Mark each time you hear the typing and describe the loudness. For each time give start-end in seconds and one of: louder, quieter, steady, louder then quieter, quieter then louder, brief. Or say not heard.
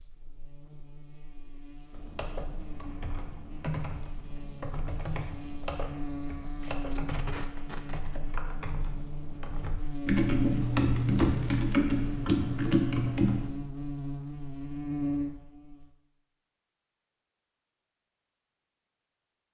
1.9-13.5 louder.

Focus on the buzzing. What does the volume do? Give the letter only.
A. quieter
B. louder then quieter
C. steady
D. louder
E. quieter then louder
D.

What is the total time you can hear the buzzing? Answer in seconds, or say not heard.
16 s.